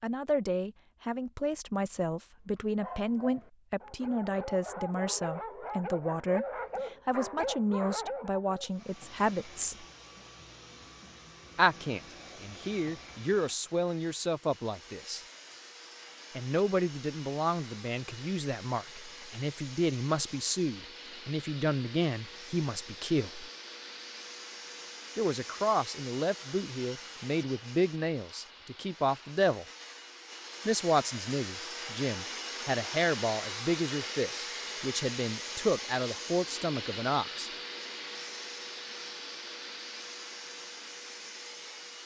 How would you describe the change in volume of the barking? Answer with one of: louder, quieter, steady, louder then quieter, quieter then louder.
louder.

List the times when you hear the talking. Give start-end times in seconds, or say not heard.
0.0-9.8, 11.6-15.2, 16.4-23.5, 25.1-29.6, 30.6-37.5.